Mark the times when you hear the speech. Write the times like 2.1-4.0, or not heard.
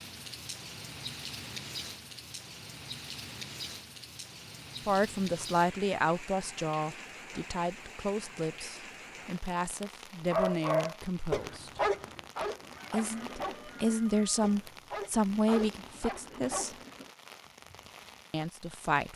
4.8-11.8, 12.9-16.8, 18.3-19.1.